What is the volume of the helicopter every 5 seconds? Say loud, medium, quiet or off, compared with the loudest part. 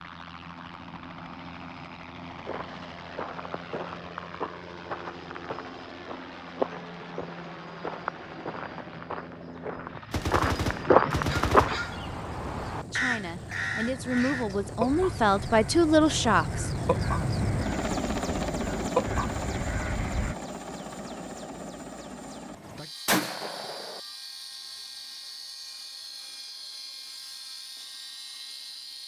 medium, medium, medium, loud, medium, medium.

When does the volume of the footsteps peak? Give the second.
11 s.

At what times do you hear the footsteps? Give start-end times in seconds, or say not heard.
2.3-11.8.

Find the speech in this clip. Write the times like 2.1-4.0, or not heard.
12.9-16.9.